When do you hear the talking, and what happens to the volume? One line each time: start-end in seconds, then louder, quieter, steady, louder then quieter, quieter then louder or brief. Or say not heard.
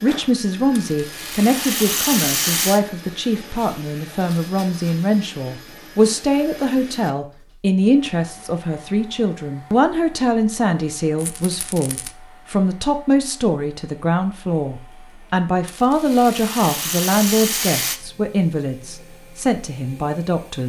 0.0-20.6 steady.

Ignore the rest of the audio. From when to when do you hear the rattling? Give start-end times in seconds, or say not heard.
0.8-2.8, 11.2-12.1, 15.7-18.0.